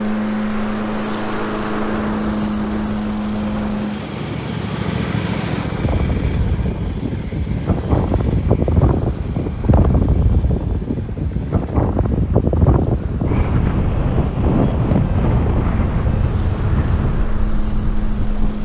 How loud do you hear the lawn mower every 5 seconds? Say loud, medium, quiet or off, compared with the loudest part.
loud, medium, quiet, medium.